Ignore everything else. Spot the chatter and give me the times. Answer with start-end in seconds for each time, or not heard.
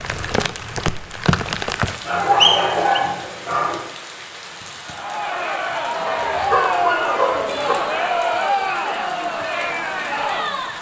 4.8-10.7.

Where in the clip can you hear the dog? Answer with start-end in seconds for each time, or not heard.
2.0-3.8, 6.0-7.8.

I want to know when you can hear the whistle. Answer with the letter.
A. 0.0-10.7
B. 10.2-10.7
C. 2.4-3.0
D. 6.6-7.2
C.